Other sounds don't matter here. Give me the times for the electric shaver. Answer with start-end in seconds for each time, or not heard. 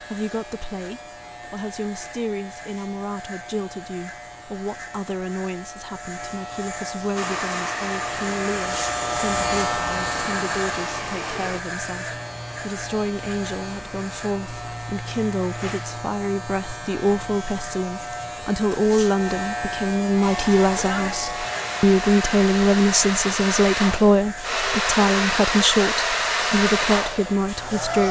0.0-28.0.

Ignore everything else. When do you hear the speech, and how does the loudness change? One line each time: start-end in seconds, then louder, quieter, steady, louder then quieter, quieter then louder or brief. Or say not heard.
0.0-28.0 louder.